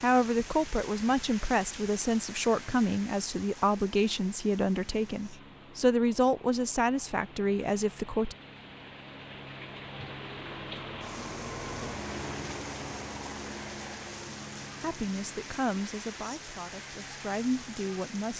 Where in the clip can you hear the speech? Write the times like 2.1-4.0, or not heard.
0.0-8.3, 14.8-18.3.